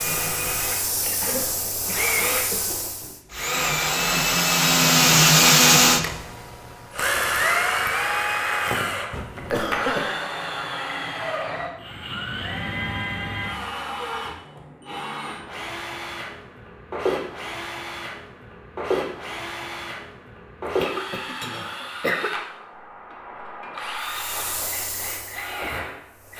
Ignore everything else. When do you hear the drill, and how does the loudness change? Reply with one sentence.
You can hear the drill from 0.0 to 26.3 s, getting quieter.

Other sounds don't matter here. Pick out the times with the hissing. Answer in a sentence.
The hissing can be heard from 0.0 to 3.2 s and from 23.9 to 26.3 s.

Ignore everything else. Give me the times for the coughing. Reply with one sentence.
The coughing can be heard from 1.0 to 2.6 s, from 9.1 to 10.2 s and from 20.6 to 22.4 s.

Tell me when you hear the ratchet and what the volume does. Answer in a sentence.
You can't hear the ratchet here.